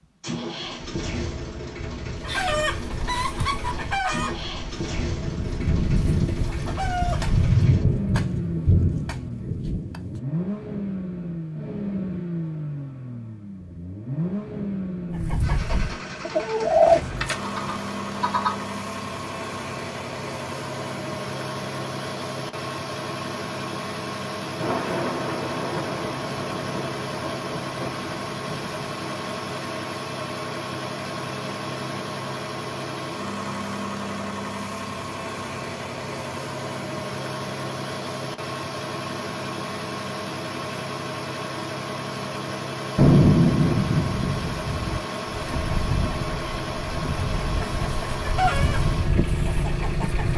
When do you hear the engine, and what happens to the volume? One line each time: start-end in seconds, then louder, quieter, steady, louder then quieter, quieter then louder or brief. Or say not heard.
0.2-50.3 steady.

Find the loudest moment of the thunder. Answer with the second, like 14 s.
43 s.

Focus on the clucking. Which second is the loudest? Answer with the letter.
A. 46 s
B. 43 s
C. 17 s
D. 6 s
C.